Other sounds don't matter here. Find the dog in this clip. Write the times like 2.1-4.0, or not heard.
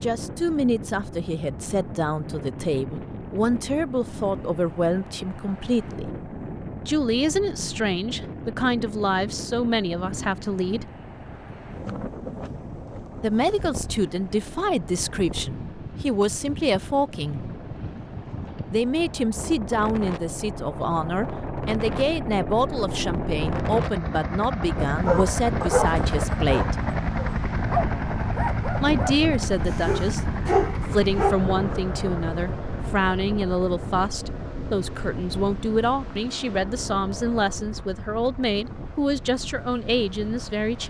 25.0-31.4.